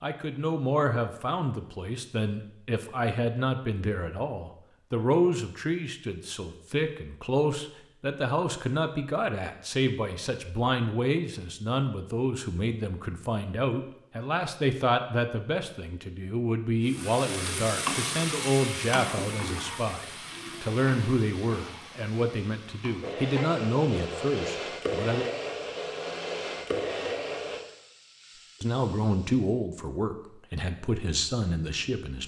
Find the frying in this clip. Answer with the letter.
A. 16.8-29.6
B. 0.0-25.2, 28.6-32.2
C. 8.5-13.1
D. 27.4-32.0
A.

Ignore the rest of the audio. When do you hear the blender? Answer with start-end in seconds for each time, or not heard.
23.0-27.6.